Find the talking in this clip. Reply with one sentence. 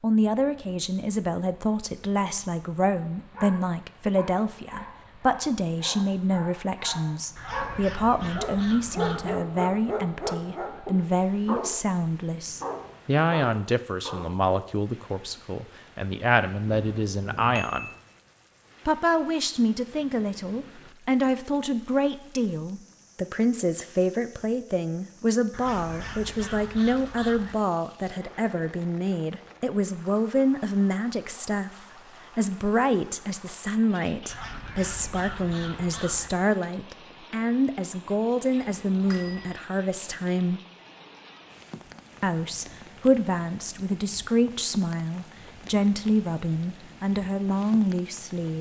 The talking can be heard from 0.0 to 17.9 s, from 18.9 to 31.7 s, from 32.4 to 40.6 s and from 42.2 to 48.5 s.